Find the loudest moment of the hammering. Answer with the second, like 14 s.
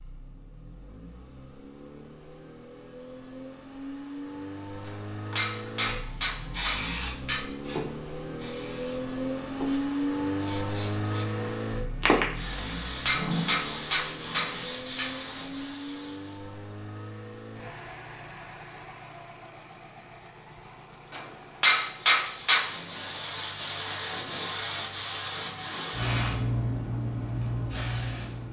22 s.